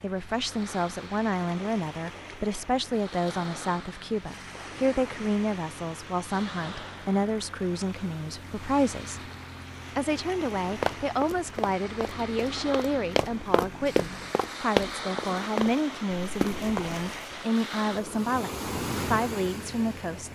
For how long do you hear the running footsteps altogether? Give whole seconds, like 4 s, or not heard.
7 s.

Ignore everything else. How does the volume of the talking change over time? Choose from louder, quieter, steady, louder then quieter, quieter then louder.
steady.